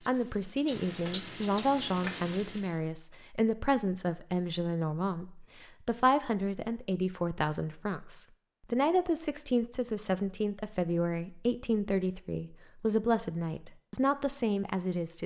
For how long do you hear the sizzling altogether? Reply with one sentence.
The sizzling can be heard for 3 seconds in total.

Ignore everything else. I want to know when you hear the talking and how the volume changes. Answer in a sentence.
The talking can be heard from 0.1 to 15.2 s, at a steady volume.